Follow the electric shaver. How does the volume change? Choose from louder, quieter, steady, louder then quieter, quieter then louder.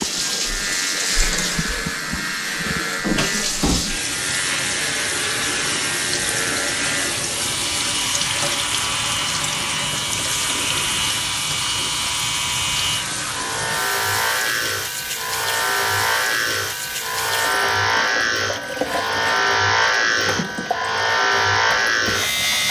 louder.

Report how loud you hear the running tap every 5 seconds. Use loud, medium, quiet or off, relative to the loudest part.
loud, loud, loud, medium, medium.